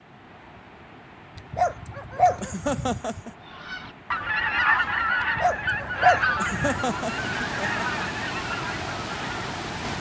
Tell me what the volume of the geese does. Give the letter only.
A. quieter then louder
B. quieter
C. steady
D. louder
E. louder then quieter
B.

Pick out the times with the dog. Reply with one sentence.
The dog can be heard from 1.4 to 3.2 s and from 5.2 to 6.8 s.